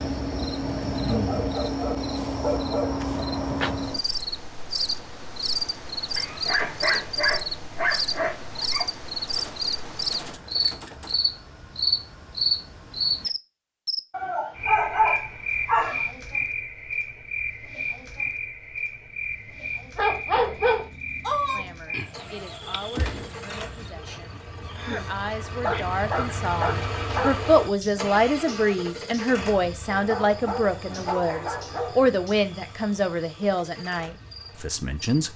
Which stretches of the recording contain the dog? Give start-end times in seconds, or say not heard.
1.1-3.0, 6.2-8.8, 14.1-16.1, 19.9-21.6, 25.6-27.4, 29.9-32.0.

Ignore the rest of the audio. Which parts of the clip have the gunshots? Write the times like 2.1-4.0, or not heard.
9.3-11.2, 22.9-23.4.